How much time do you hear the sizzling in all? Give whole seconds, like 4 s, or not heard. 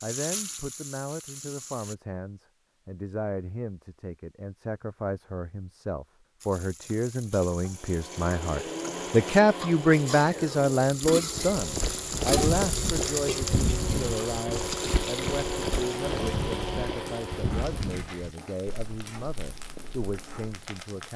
17 s.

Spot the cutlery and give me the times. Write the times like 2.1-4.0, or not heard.
not heard.